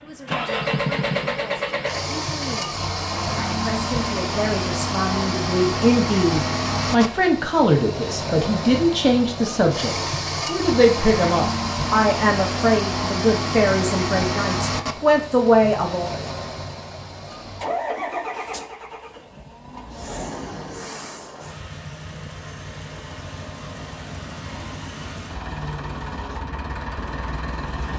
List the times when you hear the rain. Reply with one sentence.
The rain can't be heard in this clip.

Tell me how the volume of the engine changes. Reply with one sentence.
The volume of the engine goes down.